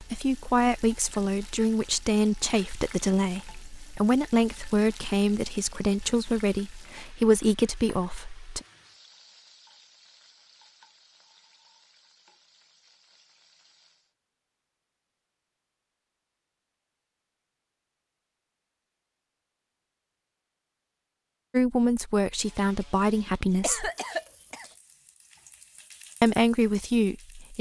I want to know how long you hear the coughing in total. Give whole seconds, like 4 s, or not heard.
2 s.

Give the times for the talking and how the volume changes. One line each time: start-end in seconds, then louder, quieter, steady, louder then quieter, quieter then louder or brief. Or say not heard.
0.0-8.6 steady
21.5-23.9 brief
26.2-27.5 brief.